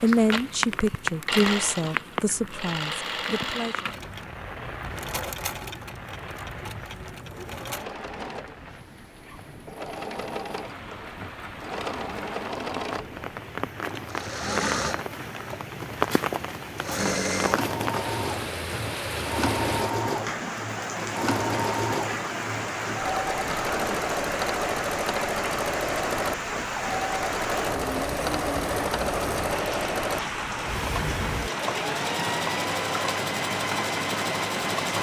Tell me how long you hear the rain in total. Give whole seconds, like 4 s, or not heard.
35 s.